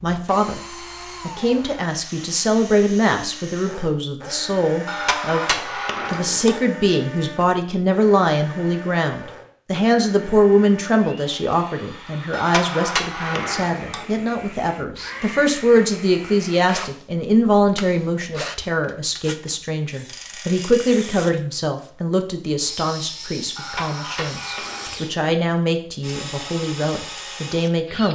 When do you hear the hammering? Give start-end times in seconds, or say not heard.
4.8-6.6, 12.3-14.1, 23.6-25.1.